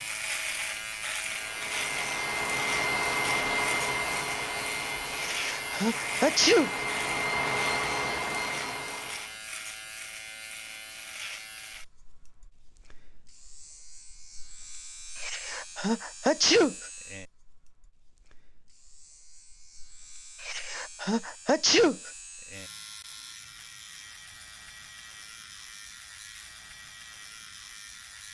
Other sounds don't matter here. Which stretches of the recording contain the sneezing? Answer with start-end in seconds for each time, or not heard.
5.2-6.8, 15.2-16.8, 20.4-22.1.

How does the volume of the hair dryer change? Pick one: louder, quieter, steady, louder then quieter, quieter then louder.
quieter then louder.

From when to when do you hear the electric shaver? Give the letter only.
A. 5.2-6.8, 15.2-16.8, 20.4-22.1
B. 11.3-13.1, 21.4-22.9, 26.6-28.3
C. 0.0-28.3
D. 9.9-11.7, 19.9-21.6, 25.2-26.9
C.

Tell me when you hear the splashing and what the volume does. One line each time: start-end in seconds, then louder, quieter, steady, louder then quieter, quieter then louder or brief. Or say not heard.
not heard.